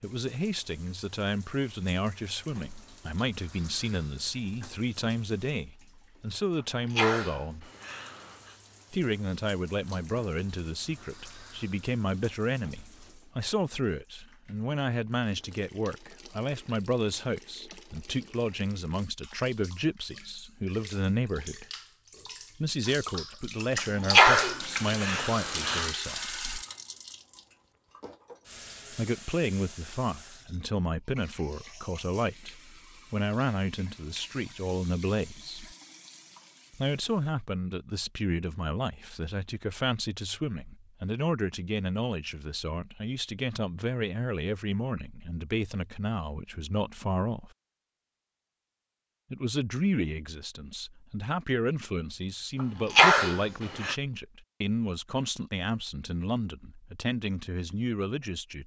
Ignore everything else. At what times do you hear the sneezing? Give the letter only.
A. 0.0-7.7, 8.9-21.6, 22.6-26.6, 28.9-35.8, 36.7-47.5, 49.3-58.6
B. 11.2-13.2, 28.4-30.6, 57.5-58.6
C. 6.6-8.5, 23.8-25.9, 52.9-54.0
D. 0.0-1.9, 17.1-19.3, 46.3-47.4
C.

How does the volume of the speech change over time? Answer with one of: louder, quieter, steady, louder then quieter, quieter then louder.
steady.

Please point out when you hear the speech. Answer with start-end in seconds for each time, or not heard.
0.0-7.7, 8.9-21.6, 22.6-26.6, 28.9-35.8, 36.7-47.5, 49.3-58.6.